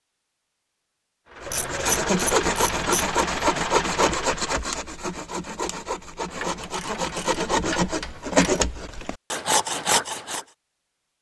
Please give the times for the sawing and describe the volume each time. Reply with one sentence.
The sawing can be heard from 1.4 to 10.4 s, getting quieter then louder.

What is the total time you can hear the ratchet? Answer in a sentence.
You can hear the ratchet for 4 seconds altogether.